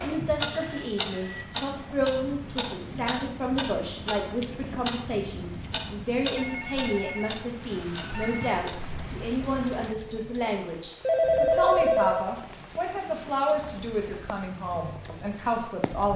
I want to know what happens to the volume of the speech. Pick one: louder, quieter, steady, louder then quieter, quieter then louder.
steady.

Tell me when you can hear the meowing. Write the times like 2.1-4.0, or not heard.
not heard.